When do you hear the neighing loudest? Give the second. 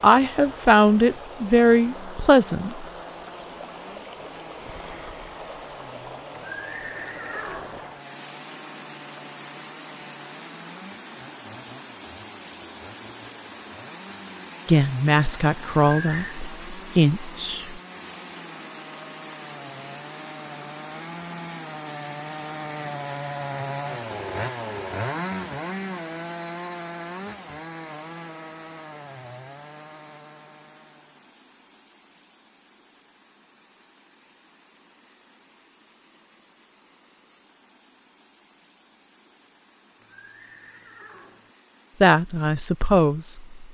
16 s.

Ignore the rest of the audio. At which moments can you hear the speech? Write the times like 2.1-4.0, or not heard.
0.0-2.9, 14.7-17.8, 42.0-43.7.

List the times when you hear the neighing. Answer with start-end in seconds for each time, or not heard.
6.3-7.8, 15.8-16.4, 40.0-41.5.